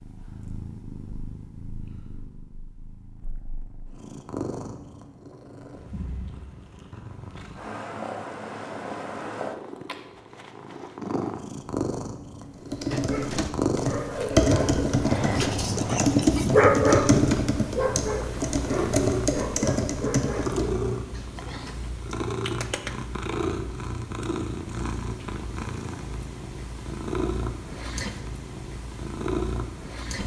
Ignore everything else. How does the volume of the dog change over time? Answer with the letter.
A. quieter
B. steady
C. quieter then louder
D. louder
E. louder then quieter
E.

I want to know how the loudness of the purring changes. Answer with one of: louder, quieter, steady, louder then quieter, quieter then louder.
louder.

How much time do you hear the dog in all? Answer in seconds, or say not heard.
9 s.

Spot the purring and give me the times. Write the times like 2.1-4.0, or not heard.
0.0-30.2.